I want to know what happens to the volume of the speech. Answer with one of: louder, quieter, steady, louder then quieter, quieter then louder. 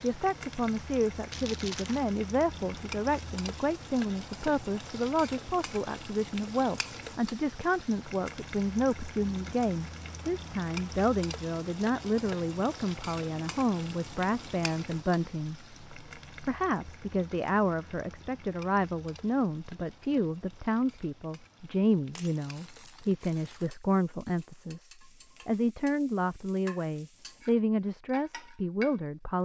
steady.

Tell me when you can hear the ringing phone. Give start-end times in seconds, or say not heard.
not heard.